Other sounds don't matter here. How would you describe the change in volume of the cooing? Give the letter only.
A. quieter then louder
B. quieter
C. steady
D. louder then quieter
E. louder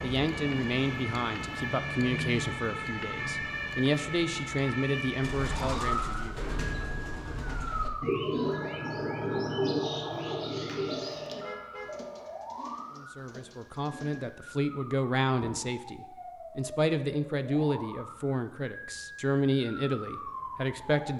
D.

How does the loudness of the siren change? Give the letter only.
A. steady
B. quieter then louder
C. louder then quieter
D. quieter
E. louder
D.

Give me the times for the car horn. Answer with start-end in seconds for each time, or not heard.
11.4-12.0.